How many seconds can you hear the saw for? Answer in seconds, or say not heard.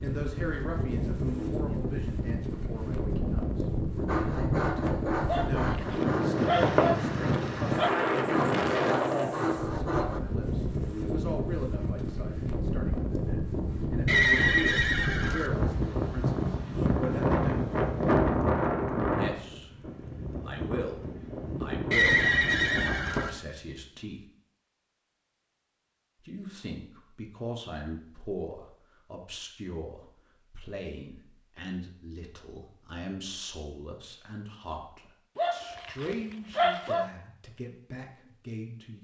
6 s.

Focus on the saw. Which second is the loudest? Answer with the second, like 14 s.
7 s.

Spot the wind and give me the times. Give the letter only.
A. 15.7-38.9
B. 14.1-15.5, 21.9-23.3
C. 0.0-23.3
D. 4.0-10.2
C.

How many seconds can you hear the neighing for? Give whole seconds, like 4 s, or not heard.
3 s.